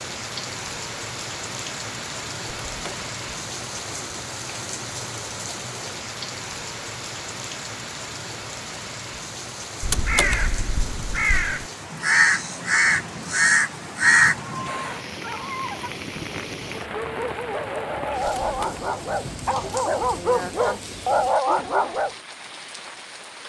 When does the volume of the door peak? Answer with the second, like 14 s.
10 s.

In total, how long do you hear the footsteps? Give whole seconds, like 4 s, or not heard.
not heard.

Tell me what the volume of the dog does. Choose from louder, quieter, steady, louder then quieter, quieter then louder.
louder.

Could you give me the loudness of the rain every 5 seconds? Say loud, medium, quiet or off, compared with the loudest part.
loud, loud, loud, loud, medium.